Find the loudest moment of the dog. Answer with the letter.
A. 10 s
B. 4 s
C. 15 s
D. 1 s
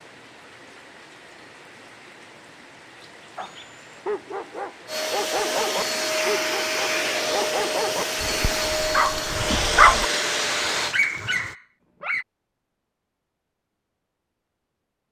A.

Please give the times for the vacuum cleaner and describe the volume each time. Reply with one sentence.
You can hear the vacuum cleaner from 4.8 to 10.9 s, at a steady volume.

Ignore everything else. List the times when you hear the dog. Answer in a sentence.
You can hear the dog from 3.4 to 10.1 s and from 10.7 to 12.2 s.